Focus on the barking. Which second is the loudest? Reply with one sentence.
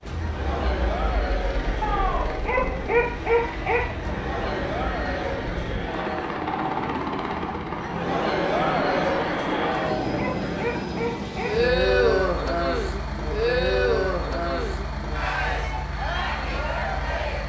The volume of the barking peaks at 3 seconds.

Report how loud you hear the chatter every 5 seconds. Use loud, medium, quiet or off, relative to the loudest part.
medium, loud, loud, medium.